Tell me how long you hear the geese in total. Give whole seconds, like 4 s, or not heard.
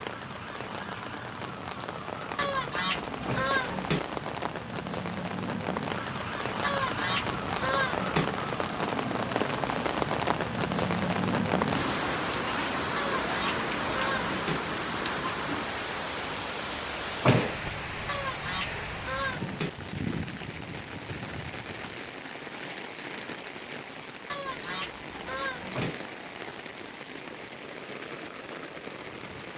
8 s.